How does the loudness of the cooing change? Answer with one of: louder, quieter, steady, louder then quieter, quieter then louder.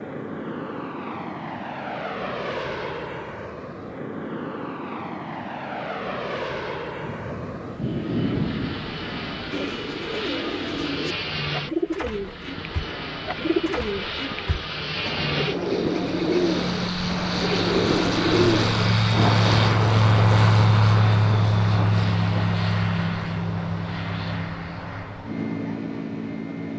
louder.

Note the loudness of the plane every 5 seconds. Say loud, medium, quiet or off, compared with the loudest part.
medium, medium, medium, loud, loud, medium.